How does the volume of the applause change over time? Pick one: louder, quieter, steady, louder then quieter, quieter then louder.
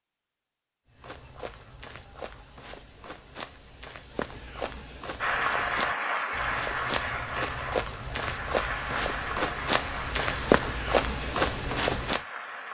quieter.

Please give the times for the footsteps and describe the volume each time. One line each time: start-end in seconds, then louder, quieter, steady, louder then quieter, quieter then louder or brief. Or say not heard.
0.8-12.2 louder.